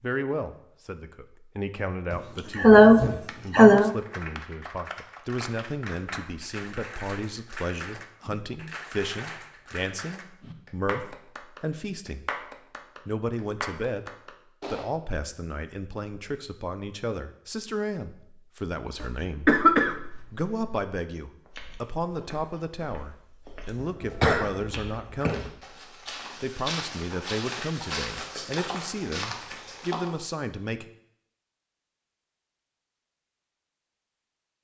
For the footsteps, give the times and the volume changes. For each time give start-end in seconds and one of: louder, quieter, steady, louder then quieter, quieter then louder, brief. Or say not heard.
21.4-30.1 louder.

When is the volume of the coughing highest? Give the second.
3 s.